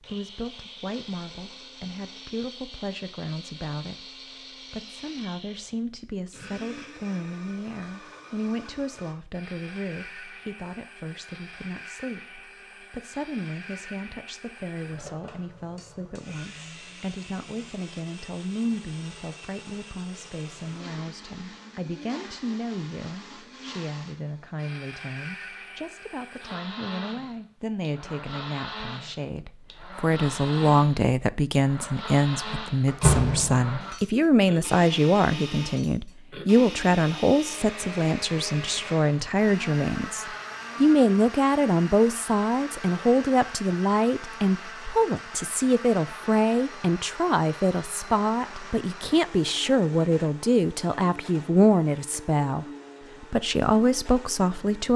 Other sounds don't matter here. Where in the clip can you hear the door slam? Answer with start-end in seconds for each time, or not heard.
32.5-33.9.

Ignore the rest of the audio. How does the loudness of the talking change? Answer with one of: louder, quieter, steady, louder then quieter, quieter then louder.
louder.